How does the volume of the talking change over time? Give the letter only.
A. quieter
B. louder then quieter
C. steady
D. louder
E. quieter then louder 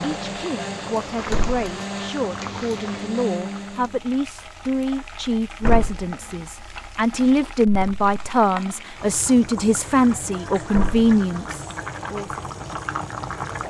D.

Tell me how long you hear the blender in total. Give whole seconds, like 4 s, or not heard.
4 s.